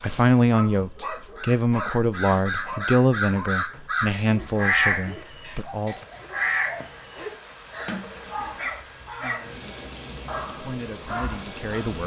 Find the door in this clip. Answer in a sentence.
You can hear the door from 7.8 to 8.3 s.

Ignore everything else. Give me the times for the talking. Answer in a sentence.
The talking can be heard from 0.0 to 6.0 s and from 10.4 to 12.0 s.